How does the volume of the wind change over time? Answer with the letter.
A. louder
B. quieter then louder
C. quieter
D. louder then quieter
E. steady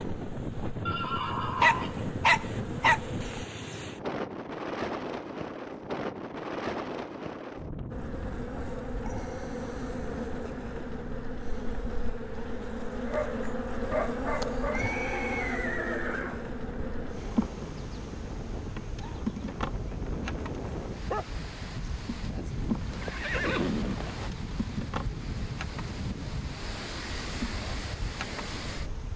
B.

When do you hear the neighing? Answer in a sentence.
The neighing can be heard from 0.8 to 2.0 s, from 14.7 to 16.5 s and from 22.8 to 24.3 s.